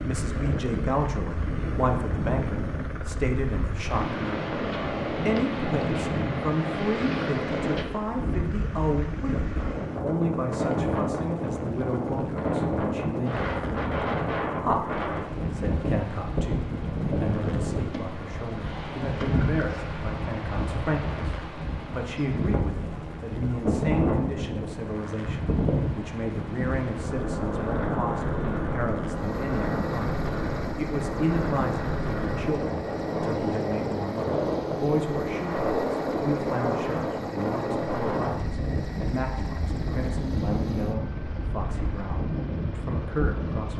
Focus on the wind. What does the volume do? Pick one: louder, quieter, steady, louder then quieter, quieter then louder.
steady.